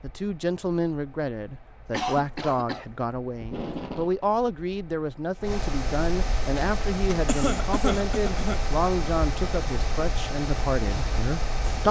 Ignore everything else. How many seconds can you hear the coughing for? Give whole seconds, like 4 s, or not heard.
2 s.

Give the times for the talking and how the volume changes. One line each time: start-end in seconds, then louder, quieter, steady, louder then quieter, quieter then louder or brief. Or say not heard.
0.0-11.8 steady.